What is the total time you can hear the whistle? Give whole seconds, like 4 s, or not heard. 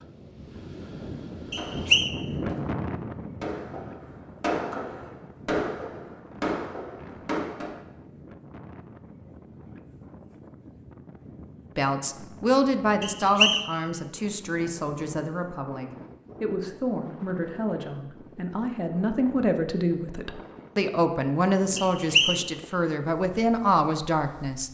2 s.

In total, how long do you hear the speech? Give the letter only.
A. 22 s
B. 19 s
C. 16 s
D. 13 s
D.